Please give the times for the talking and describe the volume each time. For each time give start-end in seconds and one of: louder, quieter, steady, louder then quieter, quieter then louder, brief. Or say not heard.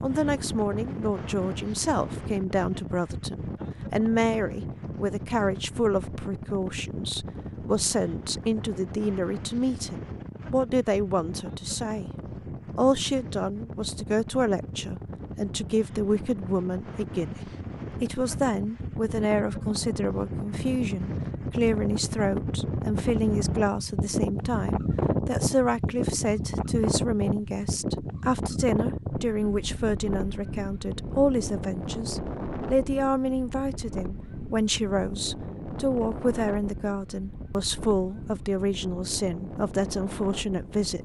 0.0-12.1 steady
12.8-40.9 steady.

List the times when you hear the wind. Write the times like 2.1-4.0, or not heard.
0.0-40.9.